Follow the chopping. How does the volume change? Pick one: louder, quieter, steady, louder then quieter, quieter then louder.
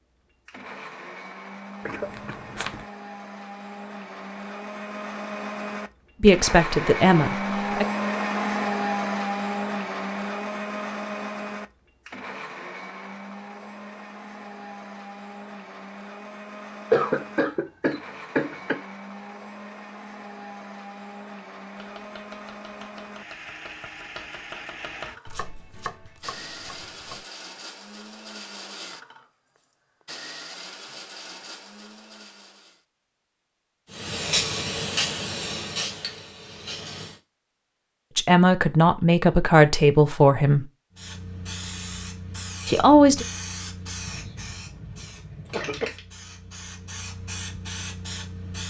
louder then quieter.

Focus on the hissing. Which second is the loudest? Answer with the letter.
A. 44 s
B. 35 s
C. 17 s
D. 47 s
B.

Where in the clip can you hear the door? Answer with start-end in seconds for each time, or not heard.
not heard.